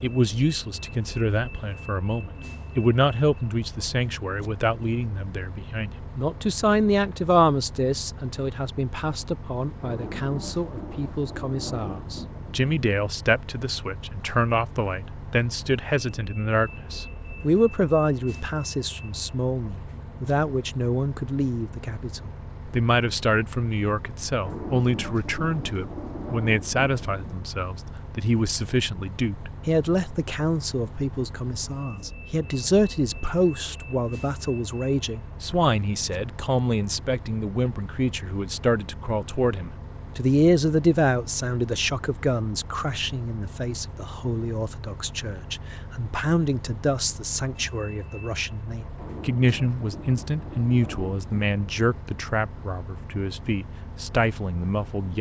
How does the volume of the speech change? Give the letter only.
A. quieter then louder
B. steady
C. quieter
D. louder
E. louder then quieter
B.